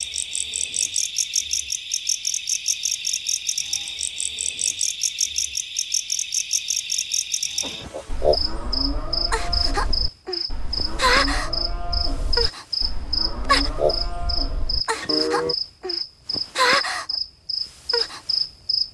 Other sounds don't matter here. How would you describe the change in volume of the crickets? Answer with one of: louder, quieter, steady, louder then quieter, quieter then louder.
steady.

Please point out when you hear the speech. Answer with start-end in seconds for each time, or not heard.
not heard.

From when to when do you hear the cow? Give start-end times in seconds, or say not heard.
7.6-15.6.